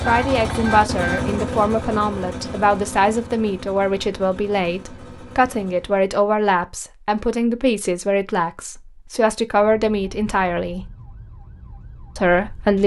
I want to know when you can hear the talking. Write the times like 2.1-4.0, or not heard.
0.1-10.9, 12.2-12.8.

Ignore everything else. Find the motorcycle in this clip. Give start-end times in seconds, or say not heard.
0.0-6.1.